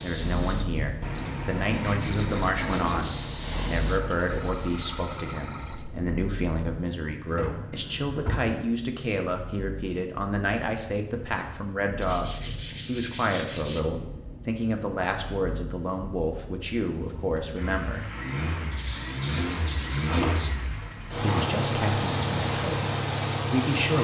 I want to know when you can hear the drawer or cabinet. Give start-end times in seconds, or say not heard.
7.2-8.6, 19.9-21.5.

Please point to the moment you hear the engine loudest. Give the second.
22 s.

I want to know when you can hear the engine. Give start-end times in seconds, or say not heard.
0.0-23.9.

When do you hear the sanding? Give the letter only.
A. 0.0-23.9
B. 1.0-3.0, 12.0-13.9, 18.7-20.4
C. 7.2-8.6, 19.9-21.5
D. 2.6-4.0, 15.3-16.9
B.